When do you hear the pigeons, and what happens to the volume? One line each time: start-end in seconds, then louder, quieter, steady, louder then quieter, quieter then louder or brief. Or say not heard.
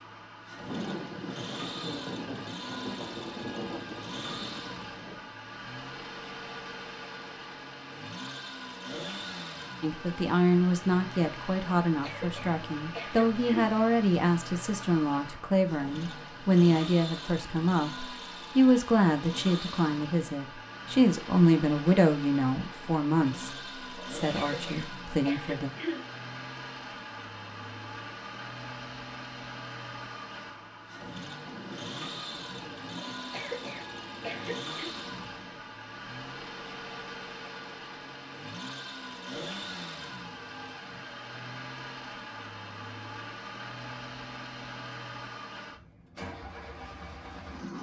not heard.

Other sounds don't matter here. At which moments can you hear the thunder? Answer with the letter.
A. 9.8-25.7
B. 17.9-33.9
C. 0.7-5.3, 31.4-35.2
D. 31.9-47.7
C.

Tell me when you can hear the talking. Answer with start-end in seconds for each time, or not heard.
9.8-25.7.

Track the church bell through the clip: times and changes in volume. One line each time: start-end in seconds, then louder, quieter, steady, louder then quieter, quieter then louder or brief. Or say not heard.
not heard.